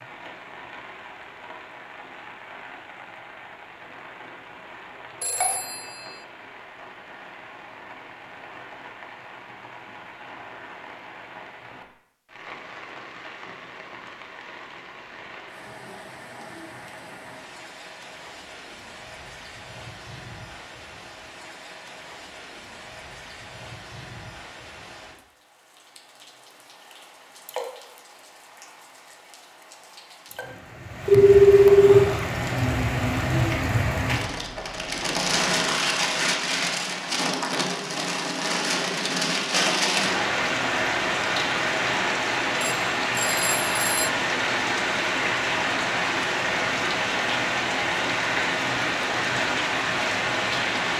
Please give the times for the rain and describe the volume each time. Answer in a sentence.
The rain can be heard from 0.0 to 50.9 s, getting louder.